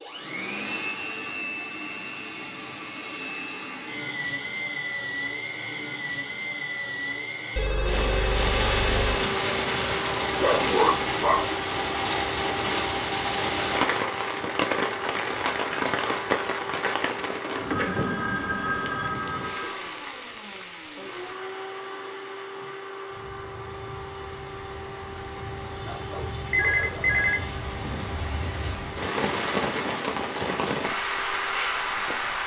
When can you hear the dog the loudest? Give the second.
11 s.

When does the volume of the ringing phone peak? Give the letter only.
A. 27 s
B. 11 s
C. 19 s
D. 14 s
A.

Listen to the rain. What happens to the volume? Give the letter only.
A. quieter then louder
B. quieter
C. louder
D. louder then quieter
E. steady
A.